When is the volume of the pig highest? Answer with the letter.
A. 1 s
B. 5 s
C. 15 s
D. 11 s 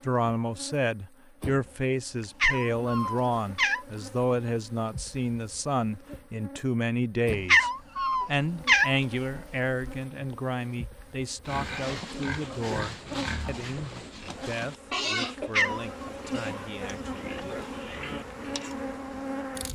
C.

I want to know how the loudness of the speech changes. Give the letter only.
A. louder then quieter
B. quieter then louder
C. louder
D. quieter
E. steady
D.